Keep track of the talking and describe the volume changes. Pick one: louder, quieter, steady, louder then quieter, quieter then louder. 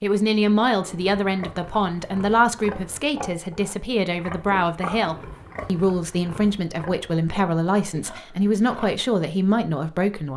steady.